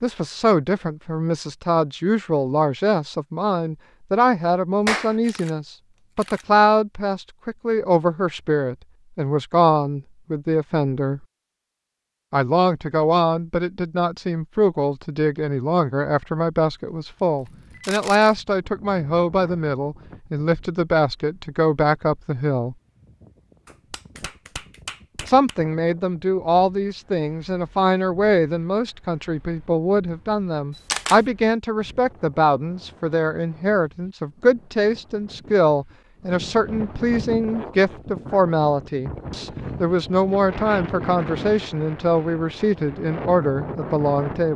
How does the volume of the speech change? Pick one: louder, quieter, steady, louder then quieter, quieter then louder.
steady.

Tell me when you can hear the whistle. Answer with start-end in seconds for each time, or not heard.
not heard.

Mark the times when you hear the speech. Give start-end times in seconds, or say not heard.
0.0-11.2, 12.3-22.8, 25.2-44.5.